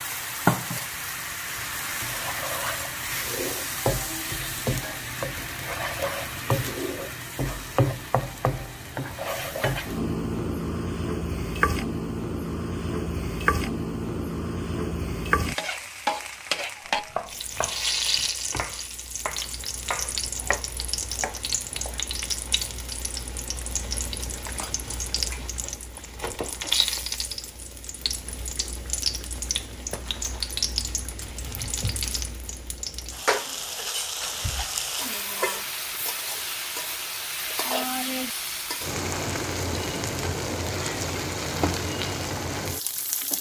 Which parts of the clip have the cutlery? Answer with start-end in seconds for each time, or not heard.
not heard.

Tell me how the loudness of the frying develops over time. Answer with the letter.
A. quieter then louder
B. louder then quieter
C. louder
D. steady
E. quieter
D.